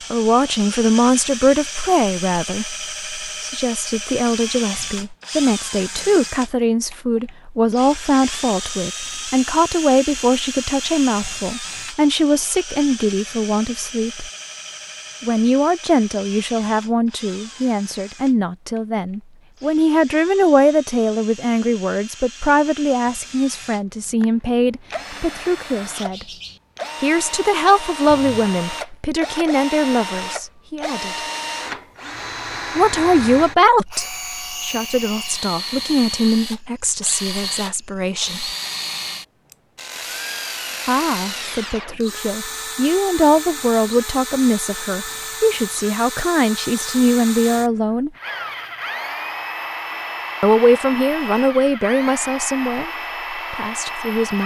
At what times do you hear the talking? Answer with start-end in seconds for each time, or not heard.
0.1-14.3, 15.2-26.2, 27.0-31.2, 32.8-38.5, 40.9-48.1, 50.4-54.4.